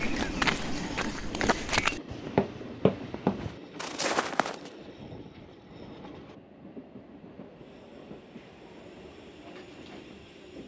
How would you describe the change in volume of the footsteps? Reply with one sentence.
The volume of the footsteps stays about the same.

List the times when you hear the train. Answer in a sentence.
The train can be heard from 0.0 to 10.6 s.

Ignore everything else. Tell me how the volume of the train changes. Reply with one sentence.
The volume of the train goes down.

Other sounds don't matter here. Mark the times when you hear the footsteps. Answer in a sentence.
You can hear the footsteps from 0.0 to 4.7 s.